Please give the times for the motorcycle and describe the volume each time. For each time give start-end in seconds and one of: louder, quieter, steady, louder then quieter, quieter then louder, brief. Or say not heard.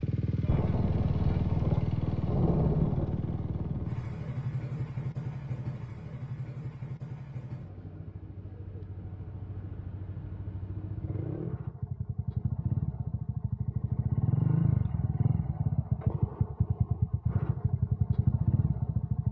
0.0-19.2 quieter then louder.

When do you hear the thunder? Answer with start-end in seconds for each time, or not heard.
0.5-4.0.